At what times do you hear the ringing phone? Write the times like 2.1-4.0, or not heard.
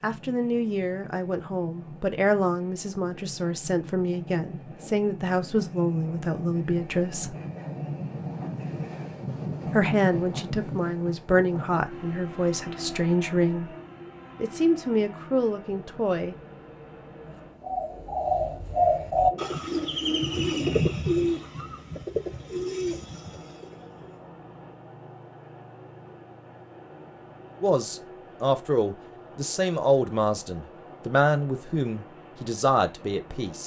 not heard.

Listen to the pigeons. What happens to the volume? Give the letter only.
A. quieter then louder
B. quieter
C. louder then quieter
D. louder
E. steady
B.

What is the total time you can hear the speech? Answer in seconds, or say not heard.
19 s.